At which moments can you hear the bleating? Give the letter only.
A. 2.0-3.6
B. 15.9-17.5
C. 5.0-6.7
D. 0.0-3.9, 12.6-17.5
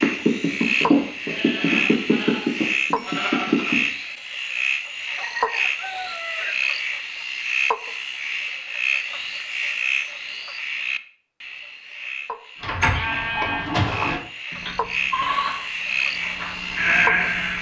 D.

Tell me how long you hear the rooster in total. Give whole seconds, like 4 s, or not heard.
2 s.